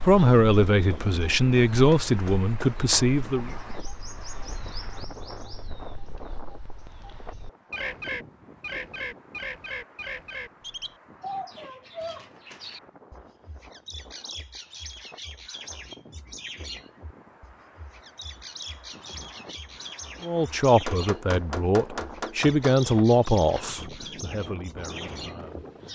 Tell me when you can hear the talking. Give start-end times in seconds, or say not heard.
0.0-3.5, 20.2-25.6.